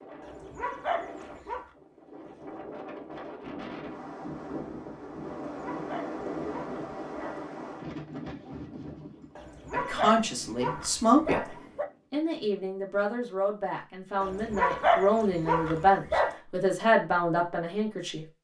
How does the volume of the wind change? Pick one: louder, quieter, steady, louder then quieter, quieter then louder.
louder then quieter.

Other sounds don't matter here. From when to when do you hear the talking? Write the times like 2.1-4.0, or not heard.
9.7-11.4, 12.1-18.2.